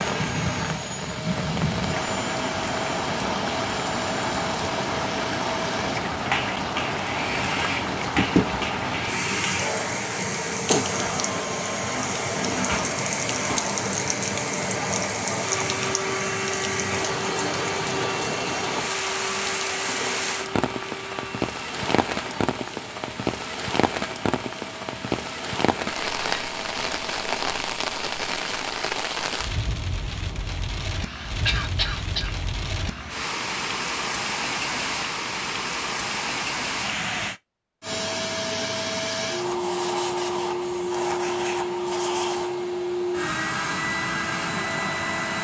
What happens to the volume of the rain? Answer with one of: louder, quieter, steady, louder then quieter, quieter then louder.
steady.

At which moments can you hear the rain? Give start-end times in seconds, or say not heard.
0.0-37.4.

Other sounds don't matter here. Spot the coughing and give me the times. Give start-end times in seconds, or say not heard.
8.2-8.6, 30.9-32.4.